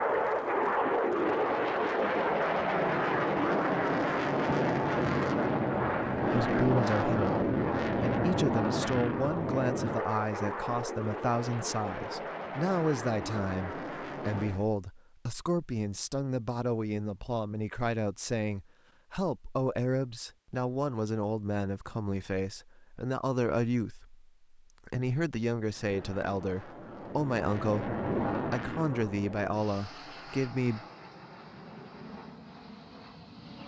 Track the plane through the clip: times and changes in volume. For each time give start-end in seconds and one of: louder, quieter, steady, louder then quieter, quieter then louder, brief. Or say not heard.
0.0-14.7 quieter
25.6-33.6 louder then quieter.